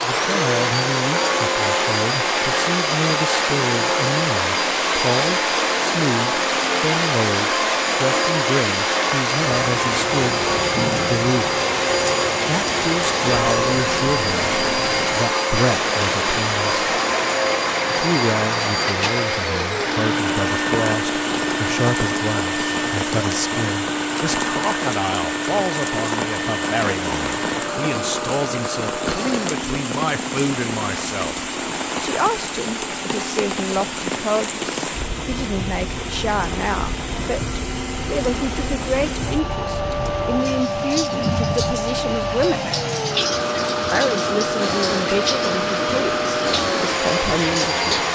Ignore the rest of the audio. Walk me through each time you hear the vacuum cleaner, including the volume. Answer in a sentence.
The vacuum cleaner can be heard from 0.0 to 48.0 s, getting quieter then louder.